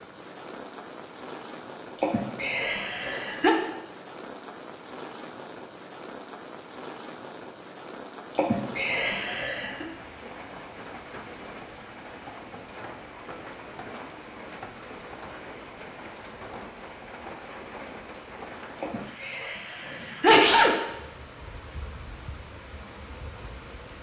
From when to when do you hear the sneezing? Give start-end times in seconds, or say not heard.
1.9-3.5, 8.3-9.8, 18.8-20.8.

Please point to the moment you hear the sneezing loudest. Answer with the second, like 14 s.
20 s.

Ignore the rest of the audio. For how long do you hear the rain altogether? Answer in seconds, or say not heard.
24 s.